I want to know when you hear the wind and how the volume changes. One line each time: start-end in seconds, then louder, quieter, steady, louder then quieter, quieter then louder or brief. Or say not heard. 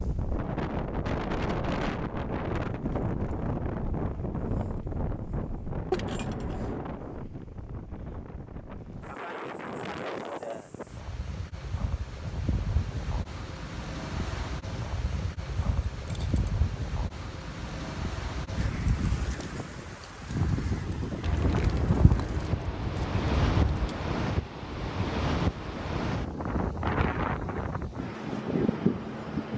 0.0-29.5 quieter then louder.